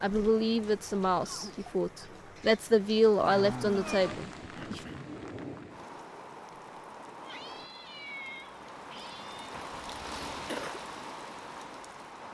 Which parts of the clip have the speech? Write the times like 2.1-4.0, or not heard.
0.0-4.8.